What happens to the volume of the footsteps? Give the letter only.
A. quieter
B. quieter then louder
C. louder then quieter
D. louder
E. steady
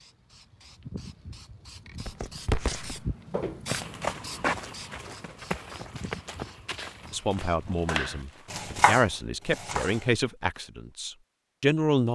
A.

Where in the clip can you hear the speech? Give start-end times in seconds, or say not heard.
7.1-12.0.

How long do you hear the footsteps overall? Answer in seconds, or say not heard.
7 s.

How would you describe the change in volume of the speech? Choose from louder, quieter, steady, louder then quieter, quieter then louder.
louder then quieter.